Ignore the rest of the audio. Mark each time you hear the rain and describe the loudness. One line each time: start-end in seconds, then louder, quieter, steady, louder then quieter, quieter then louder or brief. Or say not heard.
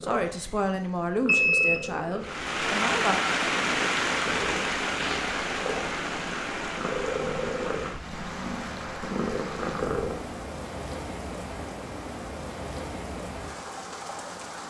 2.2-14.6 quieter.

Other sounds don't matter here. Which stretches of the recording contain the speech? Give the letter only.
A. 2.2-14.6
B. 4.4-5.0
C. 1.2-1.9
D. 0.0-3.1
D.